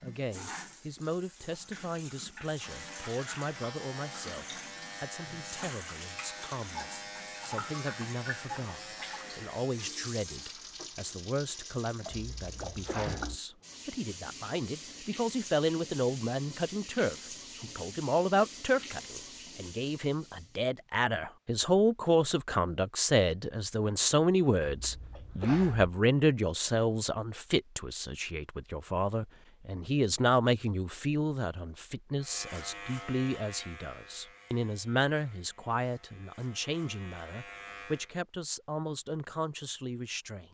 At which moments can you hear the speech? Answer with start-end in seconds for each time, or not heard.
0.0-40.4.